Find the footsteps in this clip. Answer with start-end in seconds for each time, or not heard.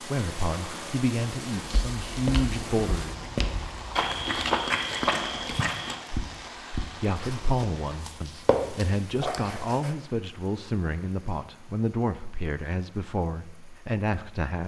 1.6-9.9.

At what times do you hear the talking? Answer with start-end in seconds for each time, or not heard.
0.0-3.2, 7.0-14.6.